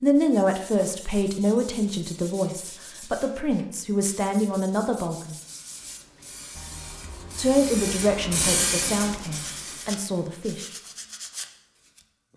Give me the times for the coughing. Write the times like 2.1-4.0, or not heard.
not heard.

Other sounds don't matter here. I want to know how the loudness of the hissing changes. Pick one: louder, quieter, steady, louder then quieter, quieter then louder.
louder then quieter.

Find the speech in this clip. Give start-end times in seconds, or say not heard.
0.0-5.3, 7.3-10.7.